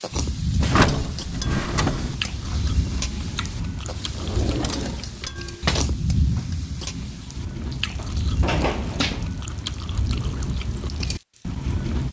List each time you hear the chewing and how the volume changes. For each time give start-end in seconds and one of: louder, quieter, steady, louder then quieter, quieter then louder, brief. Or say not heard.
0.1-12.0 steady.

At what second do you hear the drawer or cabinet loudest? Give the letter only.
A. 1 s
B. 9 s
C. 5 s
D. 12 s
A.